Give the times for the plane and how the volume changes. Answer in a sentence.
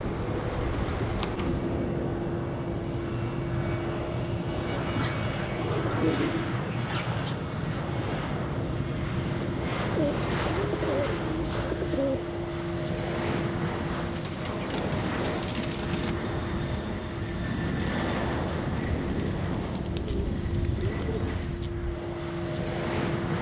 The plane can be heard from 0.0 to 23.3 s, at a steady volume.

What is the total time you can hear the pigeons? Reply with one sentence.
You can hear the pigeons for 11 seconds altogether.